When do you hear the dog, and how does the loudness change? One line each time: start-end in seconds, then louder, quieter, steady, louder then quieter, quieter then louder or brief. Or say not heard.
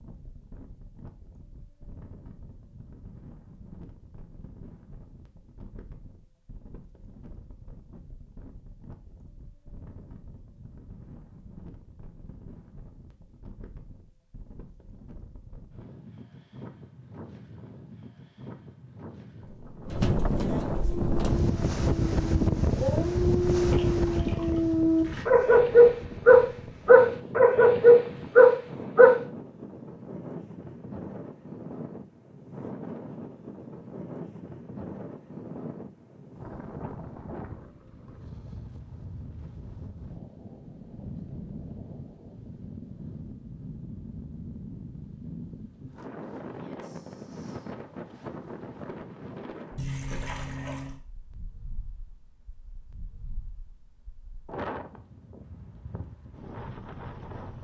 20.9-29.2 louder.